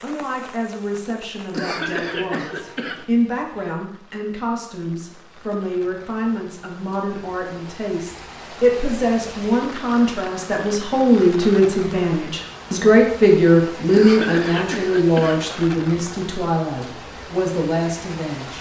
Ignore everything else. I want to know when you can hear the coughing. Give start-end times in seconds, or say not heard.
1.5-3.0, 13.9-15.4.